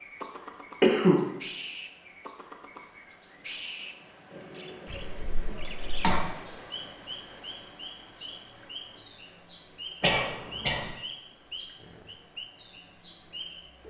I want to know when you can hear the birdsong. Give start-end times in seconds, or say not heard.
0.0-13.8.